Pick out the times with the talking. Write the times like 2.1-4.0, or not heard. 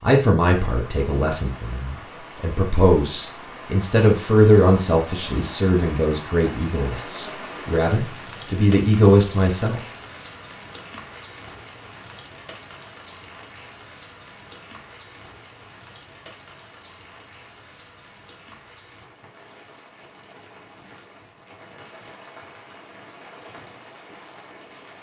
0.0-9.8.